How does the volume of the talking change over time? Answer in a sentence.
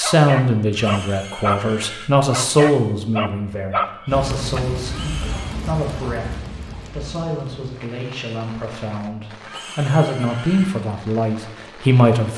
The loudness of the talking goes down, then up.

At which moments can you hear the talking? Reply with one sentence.
The talking can be heard from 0.0 to 12.3 s.